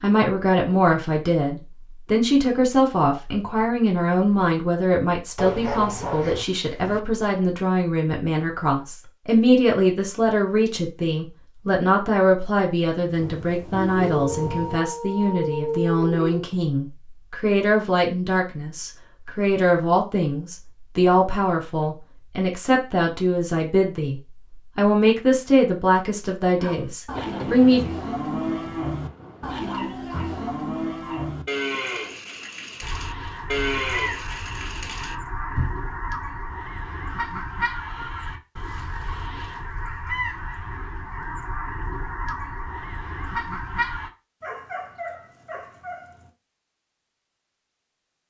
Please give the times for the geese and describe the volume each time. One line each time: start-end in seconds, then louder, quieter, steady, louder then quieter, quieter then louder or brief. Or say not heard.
32.8-44.1 steady.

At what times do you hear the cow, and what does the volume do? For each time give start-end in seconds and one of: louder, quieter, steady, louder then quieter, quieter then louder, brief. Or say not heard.
26.6-35.7 steady.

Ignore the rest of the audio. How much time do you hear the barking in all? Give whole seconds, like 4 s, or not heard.
8 s.